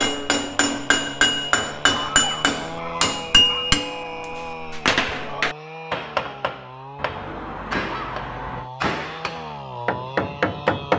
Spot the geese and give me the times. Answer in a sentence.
The geese can be heard from 1.9 to 3.7 s and from 7.0 to 8.7 s.